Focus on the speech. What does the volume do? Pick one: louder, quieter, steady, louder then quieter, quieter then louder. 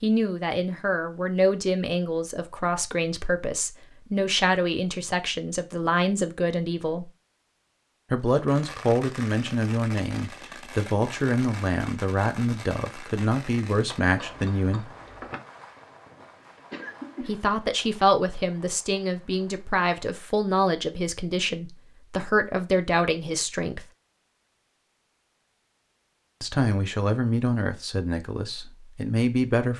steady.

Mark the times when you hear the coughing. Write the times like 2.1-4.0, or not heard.
16.7-17.4.